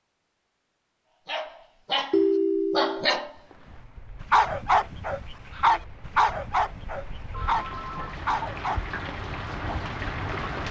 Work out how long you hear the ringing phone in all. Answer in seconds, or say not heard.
2 s.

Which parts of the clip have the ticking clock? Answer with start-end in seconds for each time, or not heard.
not heard.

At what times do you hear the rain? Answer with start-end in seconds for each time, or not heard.
3.2-10.6.